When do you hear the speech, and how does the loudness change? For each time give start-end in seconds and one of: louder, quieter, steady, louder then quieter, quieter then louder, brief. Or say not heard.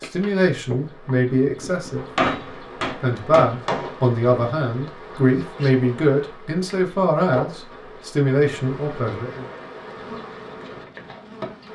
0.0-2.0 brief
3.0-9.4 steady.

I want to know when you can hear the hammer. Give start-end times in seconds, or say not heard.
2.1-3.9.